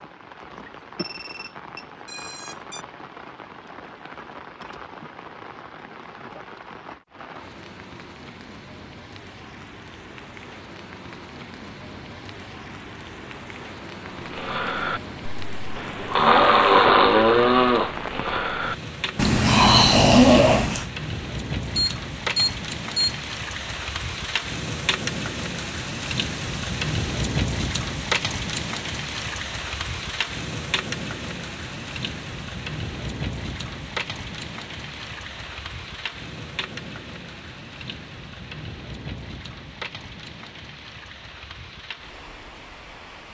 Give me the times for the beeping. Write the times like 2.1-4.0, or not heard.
0.9-2.9, 21.8-23.2.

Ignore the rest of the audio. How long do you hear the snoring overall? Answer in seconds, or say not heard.
7 s.